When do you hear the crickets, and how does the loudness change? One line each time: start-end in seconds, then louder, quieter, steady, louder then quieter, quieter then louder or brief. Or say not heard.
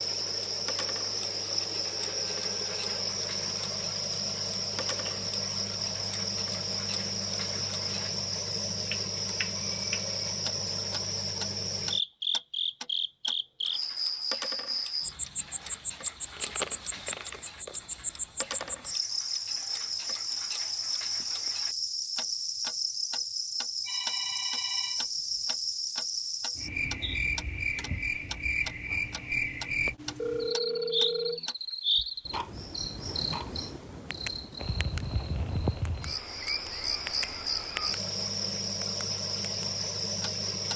0.0-40.7 steady.